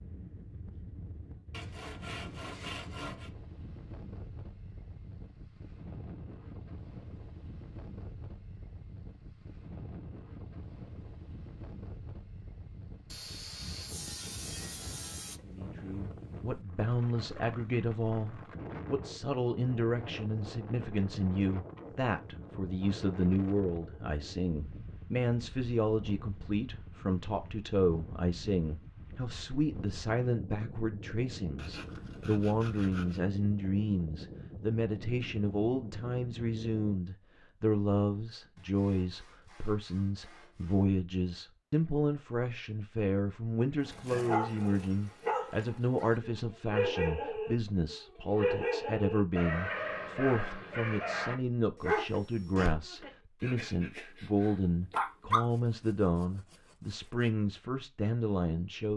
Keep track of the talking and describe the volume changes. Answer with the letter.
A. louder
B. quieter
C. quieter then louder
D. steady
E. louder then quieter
D.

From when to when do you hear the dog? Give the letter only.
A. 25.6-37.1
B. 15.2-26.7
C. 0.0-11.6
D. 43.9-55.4
D.